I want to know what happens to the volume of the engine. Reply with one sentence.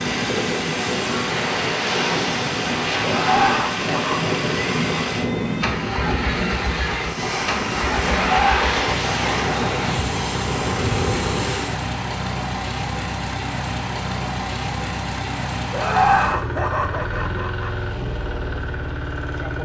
The volume of the engine stays about the same.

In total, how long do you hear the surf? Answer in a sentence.
You can hear the surf for 12 seconds altogether.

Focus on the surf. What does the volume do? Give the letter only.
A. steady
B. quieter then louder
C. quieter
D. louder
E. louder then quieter
A.